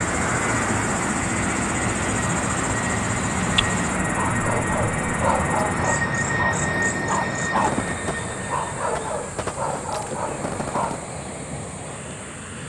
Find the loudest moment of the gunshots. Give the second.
8 s.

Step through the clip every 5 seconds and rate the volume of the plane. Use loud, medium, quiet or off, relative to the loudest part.
loud, loud, medium.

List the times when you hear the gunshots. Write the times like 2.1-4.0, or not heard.
7.5-11.1.